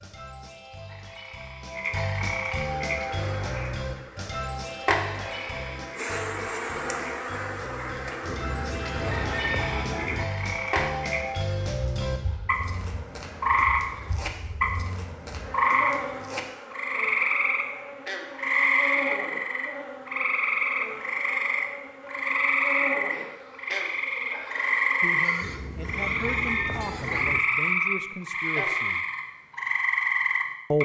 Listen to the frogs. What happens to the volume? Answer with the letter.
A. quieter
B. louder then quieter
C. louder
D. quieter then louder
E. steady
C.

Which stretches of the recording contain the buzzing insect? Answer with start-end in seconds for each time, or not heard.
2.6-25.5.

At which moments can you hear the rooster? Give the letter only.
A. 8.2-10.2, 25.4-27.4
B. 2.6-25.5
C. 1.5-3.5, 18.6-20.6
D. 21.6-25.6
A.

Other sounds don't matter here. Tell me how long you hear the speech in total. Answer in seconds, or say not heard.
4 s.